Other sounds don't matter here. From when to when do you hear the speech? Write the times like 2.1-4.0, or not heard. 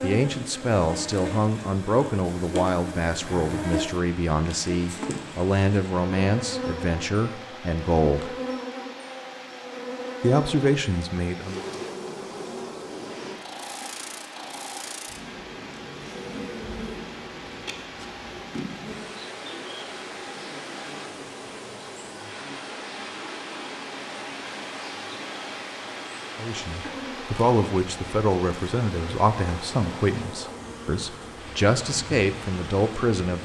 0.0-8.3, 10.2-11.6, 26.4-33.3.